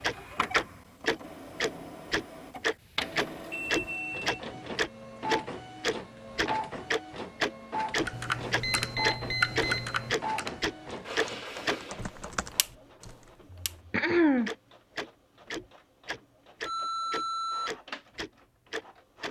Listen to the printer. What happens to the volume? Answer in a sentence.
The loudness of the printer goes down.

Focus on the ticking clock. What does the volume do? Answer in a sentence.
The loudness of the ticking clock goes down.